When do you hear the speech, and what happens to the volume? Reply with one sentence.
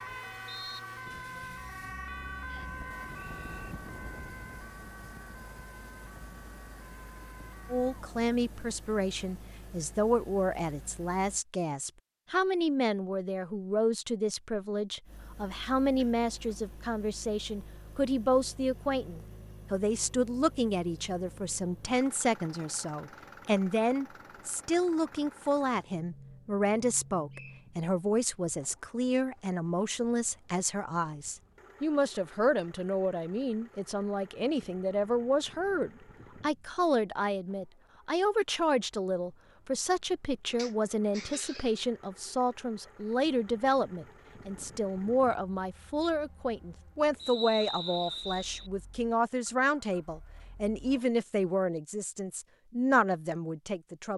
You can hear the speech from 7.7 to 54.1 s, at a steady volume.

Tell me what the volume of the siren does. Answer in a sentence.
The loudness of the siren goes down.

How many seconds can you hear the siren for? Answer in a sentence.
The siren can be heard for 9 seconds in total.